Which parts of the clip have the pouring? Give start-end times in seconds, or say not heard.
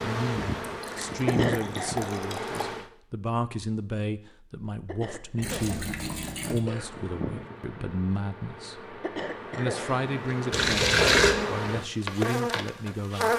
0.7-2.6, 5.4-6.6, 10.5-11.3.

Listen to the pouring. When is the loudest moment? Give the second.
11 s.